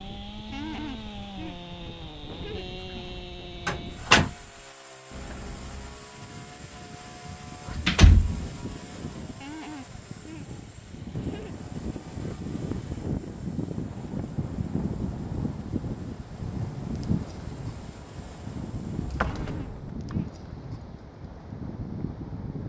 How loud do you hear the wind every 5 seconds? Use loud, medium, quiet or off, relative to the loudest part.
quiet, medium, loud, loud, loud.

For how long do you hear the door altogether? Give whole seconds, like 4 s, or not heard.
3 s.